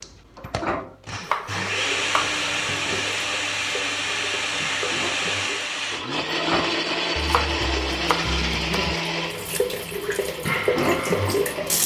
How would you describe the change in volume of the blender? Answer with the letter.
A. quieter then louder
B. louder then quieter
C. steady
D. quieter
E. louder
D.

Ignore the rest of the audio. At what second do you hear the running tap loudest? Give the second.
11 s.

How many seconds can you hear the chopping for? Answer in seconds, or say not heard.
3 s.